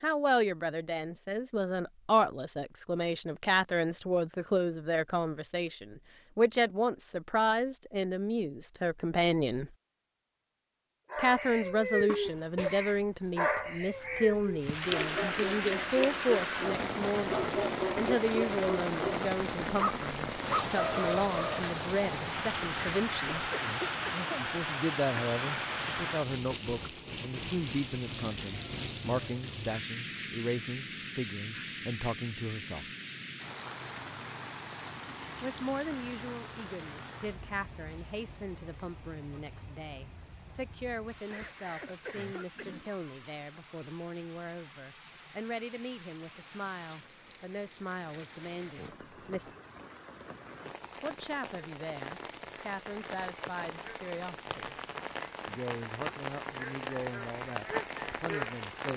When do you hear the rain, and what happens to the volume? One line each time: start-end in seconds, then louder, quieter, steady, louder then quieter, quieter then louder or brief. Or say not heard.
14.6-58.9 quieter then louder.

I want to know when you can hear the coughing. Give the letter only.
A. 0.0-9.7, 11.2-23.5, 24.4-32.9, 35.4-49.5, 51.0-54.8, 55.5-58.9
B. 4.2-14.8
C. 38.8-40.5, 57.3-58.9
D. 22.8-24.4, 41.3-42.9
D.